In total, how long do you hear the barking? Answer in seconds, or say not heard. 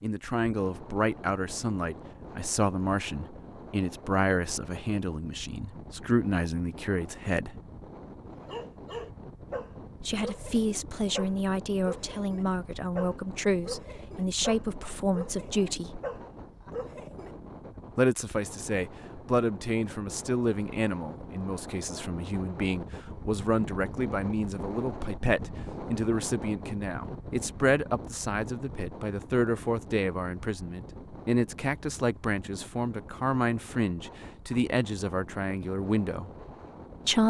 9 s.